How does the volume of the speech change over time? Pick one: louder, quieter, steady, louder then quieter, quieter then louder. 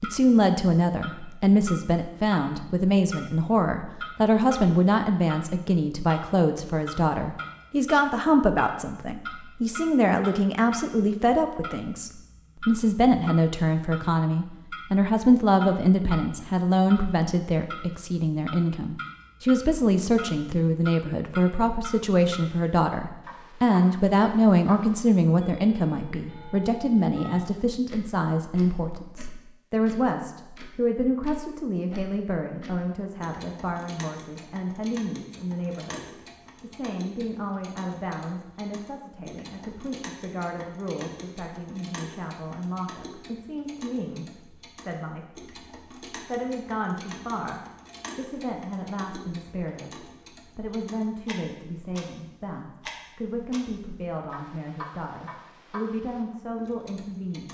quieter.